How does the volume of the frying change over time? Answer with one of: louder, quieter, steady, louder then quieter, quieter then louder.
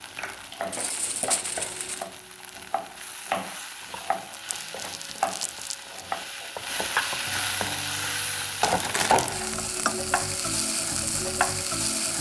louder.